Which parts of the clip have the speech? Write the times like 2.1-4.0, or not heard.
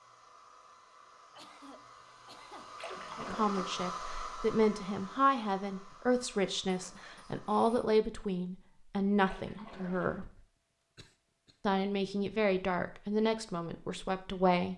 3.1-10.2, 11.7-14.7.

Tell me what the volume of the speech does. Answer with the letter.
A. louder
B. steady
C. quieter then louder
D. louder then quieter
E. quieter
B.